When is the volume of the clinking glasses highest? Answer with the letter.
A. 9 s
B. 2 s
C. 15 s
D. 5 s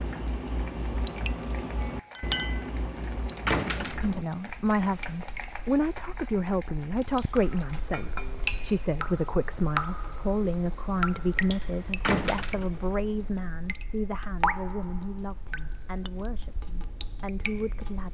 B.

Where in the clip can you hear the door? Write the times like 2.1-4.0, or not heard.
3.5-4.2, 12.0-12.8.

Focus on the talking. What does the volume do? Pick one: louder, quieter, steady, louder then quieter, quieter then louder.
quieter.